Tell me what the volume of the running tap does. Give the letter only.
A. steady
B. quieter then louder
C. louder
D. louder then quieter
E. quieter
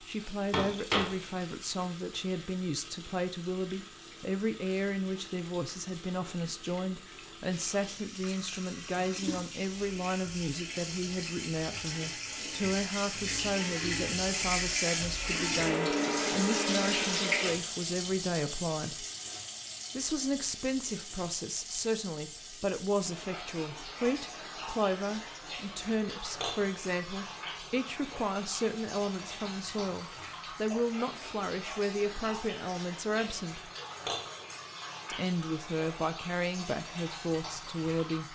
D.